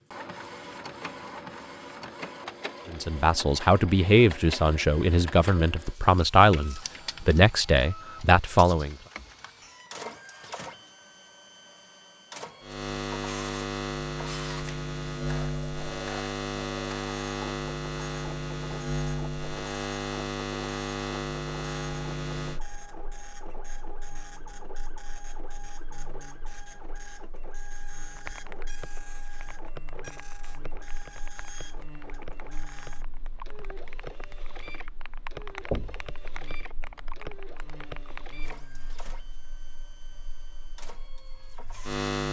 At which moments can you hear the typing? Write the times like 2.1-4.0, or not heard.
28.1-38.4.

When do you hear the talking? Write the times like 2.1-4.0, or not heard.
2.9-8.9.